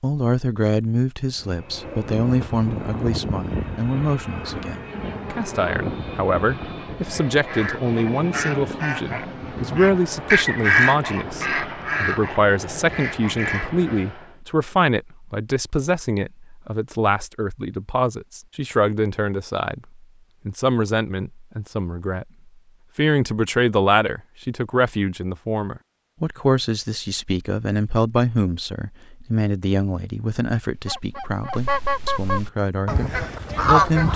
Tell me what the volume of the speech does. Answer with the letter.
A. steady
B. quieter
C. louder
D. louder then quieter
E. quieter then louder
A.